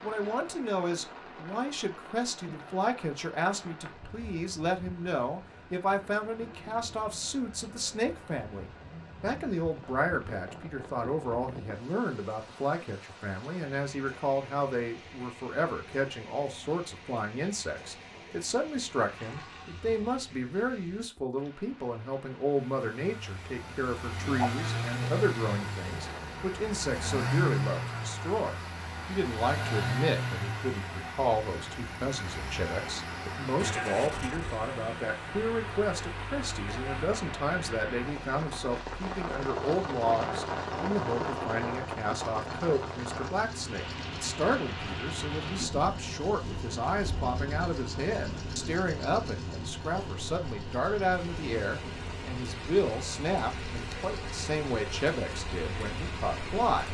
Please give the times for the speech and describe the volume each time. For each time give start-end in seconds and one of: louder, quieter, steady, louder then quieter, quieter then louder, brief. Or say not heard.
0.0-56.8 steady.